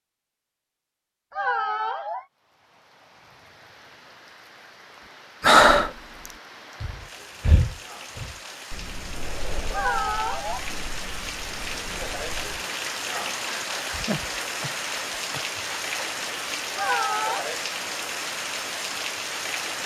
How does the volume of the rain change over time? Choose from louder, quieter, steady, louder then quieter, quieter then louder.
louder.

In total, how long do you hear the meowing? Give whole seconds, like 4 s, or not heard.
3 s.